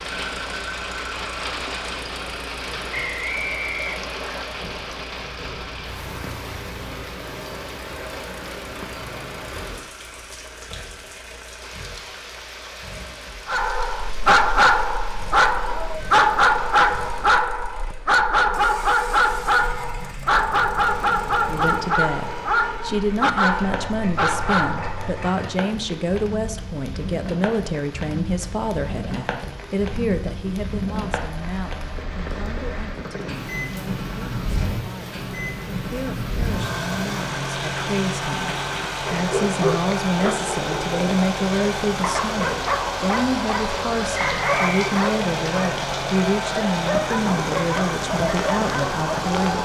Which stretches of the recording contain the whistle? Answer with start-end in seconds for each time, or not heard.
2.9-4.5, 44.4-45.0.